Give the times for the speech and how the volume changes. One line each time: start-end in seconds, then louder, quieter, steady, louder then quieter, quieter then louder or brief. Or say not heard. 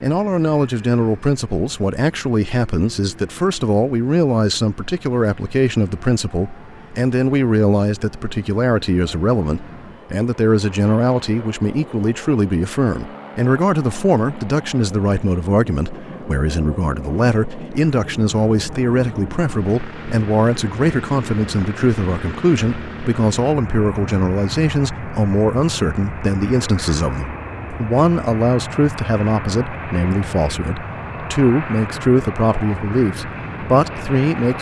0.0-34.5 steady.